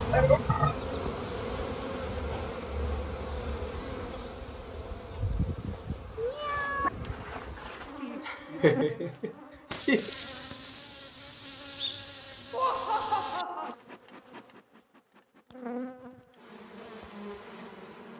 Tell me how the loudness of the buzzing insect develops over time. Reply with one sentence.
The volume of the buzzing insect goes down.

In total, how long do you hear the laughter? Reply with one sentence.
The laughter can be heard for 4 seconds in total.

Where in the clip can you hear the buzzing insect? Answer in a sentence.
You can hear the buzzing insect from 0.0 to 18.1 s.